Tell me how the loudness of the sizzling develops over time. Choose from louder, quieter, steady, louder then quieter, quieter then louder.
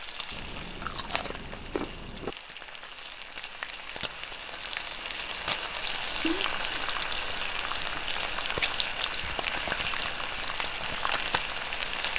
louder.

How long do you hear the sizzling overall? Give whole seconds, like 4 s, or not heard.
12 s.